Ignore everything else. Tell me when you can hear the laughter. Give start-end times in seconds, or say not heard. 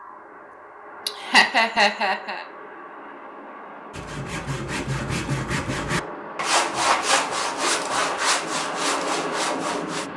1.1-2.5.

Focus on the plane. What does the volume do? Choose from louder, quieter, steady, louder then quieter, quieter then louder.
louder.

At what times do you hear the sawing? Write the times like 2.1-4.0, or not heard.
3.9-10.1.